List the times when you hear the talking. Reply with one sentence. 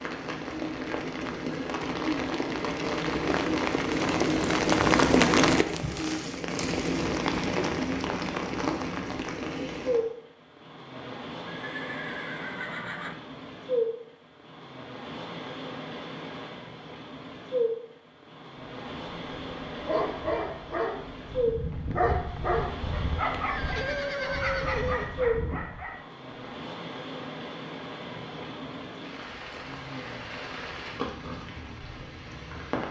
The talking can't be heard in this clip.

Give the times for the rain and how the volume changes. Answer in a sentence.
You can hear the rain from 0.0 to 32.8 s, getting quieter.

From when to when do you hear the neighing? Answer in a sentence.
You can hear the neighing from 11.4 to 13.2 s and from 23.4 to 25.1 s.